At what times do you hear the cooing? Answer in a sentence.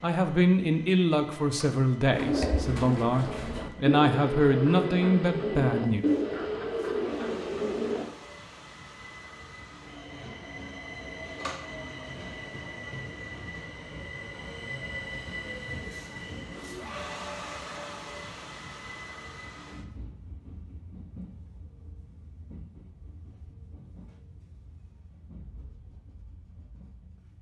The cooing can be heard from 2.1 to 8.1 s.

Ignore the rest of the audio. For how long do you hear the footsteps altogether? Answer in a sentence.
The footsteps can't be heard in this clip.